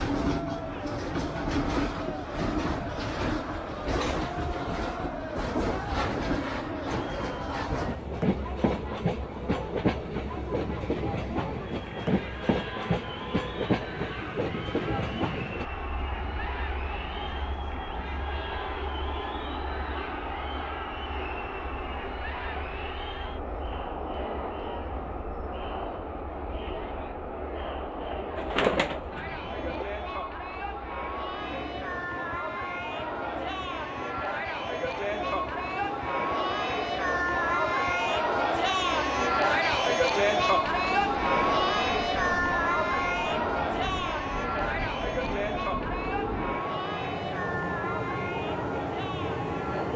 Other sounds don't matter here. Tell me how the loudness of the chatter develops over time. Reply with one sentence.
The volume of the chatter goes up.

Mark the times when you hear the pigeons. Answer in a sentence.
You can hear the pigeons from 28.4 to 29.9 s.